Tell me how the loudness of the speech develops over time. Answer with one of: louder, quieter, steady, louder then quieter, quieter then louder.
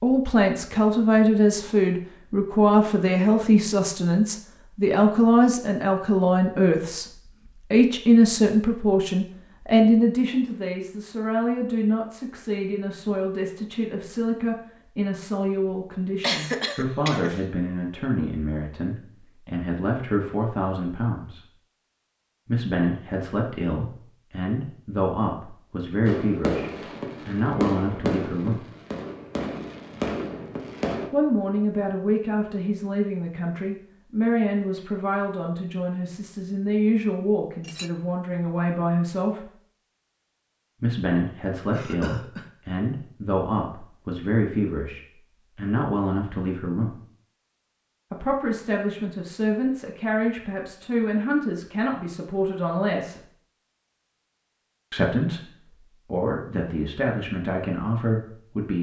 quieter.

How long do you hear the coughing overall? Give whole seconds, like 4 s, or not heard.
2 s.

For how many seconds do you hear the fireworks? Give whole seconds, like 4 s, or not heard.
5 s.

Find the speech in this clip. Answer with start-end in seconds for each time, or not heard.
0.0-21.4, 22.4-28.6, 31.1-39.5, 40.8-47.0, 48.1-53.2, 54.9-58.7.